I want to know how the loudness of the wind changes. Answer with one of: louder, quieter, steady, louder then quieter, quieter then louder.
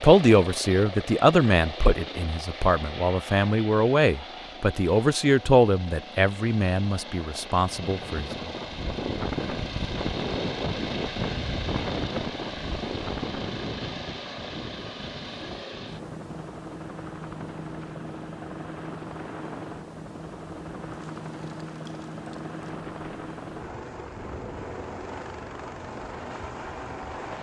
quieter.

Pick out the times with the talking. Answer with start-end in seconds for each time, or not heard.
0.0-8.5.